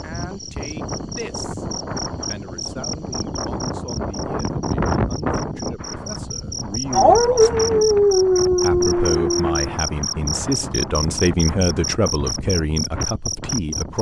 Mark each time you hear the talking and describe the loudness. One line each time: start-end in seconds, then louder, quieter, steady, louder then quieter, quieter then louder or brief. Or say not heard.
0.0-1.6 brief
2.2-13.9 louder.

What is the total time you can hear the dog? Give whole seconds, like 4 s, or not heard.
3 s.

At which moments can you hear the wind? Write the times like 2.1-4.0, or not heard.
0.0-13.9.